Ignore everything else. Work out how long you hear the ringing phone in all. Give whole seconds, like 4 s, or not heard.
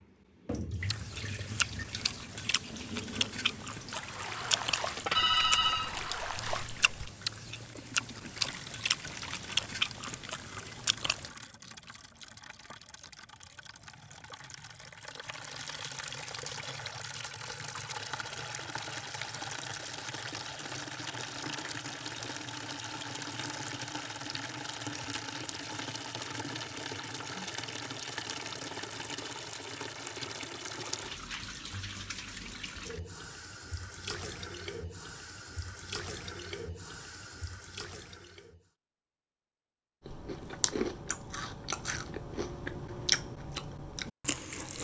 2 s.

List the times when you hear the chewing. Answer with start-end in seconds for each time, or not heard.
0.8-11.3, 40.0-44.7.